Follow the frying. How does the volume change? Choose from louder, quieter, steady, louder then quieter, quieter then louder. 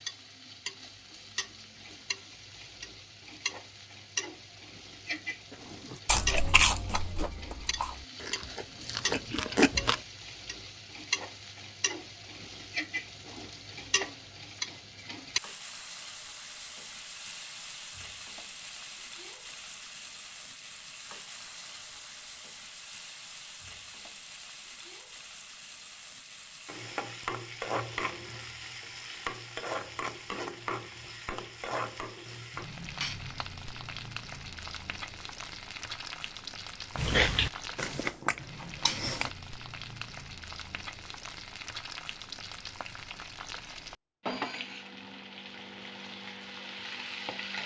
steady.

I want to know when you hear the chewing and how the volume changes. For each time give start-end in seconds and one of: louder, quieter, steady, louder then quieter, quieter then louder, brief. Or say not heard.
5.9-10.0 quieter then louder
37.0-39.3 brief.